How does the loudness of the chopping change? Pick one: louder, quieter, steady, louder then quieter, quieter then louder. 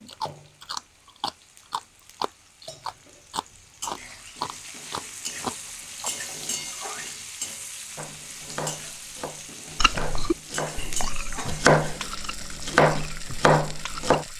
louder.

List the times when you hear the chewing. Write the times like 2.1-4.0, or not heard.
0.0-6.1, 9.8-14.3.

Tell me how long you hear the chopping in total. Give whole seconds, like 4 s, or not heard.
6 s.